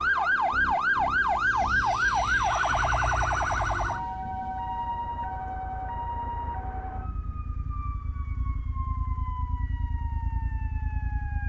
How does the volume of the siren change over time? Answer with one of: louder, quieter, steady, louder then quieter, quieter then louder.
quieter.